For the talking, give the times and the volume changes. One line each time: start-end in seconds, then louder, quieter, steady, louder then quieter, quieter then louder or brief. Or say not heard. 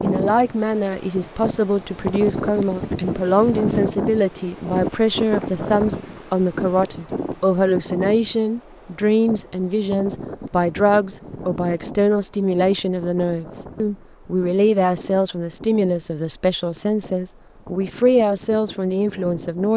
0.0-19.7 steady.